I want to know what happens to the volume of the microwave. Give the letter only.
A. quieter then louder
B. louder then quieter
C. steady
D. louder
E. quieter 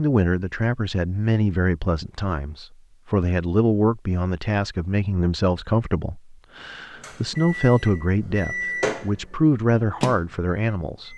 B.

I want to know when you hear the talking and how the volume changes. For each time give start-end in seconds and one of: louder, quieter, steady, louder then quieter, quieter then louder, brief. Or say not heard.
0.0-11.1 steady.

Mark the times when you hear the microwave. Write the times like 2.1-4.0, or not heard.
7.0-11.1.